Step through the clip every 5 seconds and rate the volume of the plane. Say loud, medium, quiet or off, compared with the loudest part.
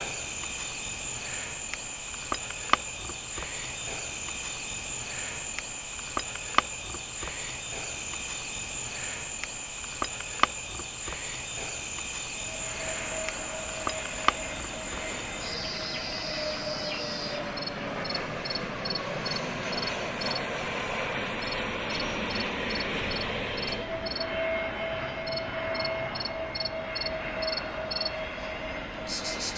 off, off, medium, loud, loud, loud.